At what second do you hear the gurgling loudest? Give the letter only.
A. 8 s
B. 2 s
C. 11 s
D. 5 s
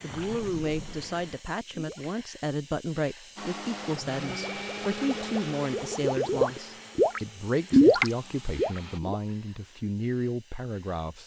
A.